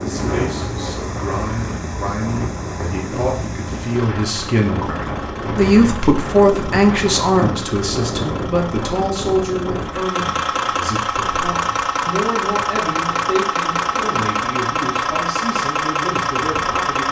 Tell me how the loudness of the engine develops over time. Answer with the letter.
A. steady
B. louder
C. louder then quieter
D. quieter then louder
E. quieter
B.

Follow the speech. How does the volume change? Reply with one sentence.
The volume of the speech goes up, then down.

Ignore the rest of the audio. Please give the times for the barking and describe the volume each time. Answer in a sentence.
The barking can't be heard in this clip.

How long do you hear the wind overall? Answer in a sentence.
You can hear the wind for 17 seconds altogether.